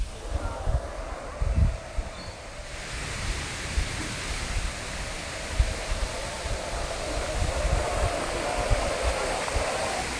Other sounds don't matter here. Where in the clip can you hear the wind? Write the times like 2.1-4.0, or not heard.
0.0-10.1.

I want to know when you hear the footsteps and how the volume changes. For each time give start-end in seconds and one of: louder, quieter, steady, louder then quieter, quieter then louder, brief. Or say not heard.
not heard.